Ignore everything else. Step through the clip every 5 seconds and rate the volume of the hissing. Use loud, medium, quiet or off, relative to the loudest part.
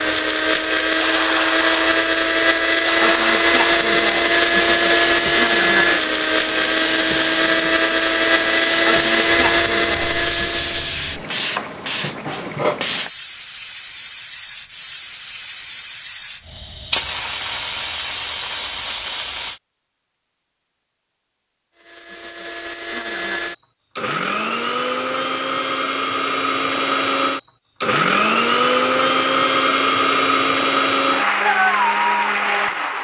loud, loud, loud, loud, off, off, off.